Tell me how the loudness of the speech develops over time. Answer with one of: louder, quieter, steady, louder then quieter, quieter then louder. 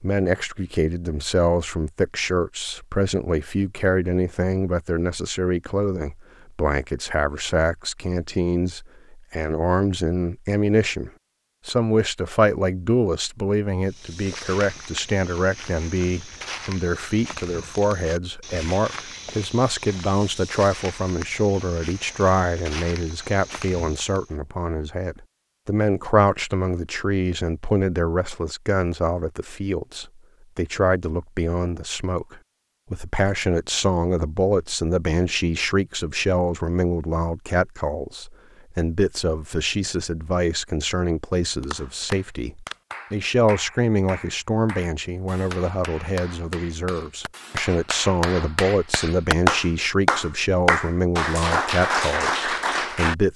steady.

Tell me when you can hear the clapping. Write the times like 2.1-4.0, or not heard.
41.6-53.1.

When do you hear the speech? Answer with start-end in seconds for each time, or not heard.
0.0-53.3.